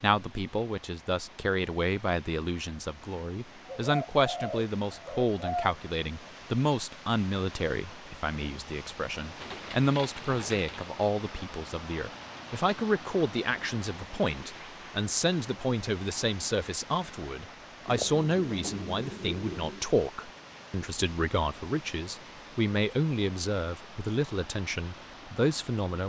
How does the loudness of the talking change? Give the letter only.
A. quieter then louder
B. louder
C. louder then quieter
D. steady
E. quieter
D.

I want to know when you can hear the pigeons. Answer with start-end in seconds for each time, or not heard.
3.6-5.8, 9.3-10.8, 17.9-19.8.